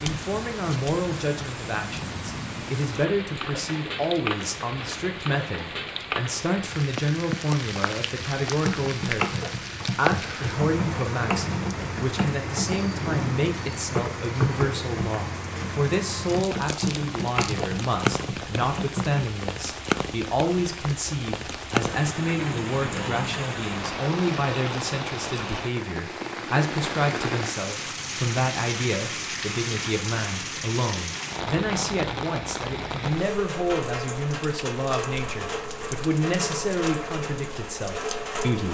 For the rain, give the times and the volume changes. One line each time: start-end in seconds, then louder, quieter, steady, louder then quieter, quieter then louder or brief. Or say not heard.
0.0-38.6 steady.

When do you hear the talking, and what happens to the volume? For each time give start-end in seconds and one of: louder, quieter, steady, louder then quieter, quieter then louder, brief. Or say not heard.
0.0-38.6 steady.